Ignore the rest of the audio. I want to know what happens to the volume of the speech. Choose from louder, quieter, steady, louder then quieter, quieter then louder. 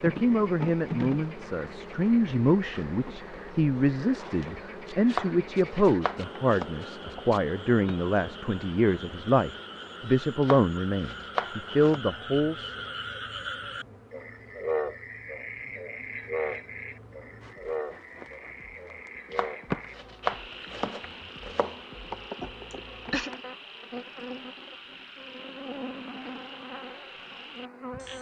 steady.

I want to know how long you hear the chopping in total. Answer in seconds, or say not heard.
6 s.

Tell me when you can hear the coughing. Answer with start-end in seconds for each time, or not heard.
22.4-23.3.